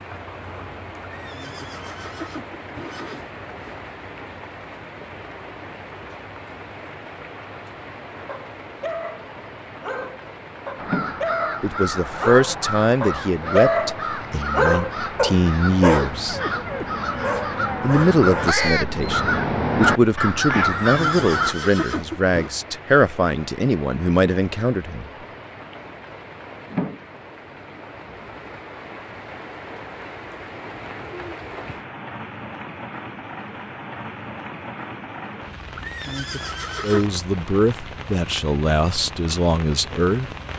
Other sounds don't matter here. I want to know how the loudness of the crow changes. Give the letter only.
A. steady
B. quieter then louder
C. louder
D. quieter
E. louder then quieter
C.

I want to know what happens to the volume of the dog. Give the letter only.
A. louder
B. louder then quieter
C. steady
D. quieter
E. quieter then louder
B.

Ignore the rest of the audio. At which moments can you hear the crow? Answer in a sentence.
You can hear the crow from 10.8 to 21.6 s.